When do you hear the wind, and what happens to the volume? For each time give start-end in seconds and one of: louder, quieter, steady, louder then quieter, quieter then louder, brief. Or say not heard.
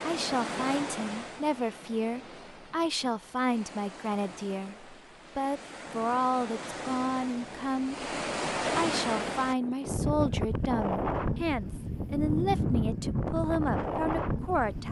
0.0-14.8 quieter then louder.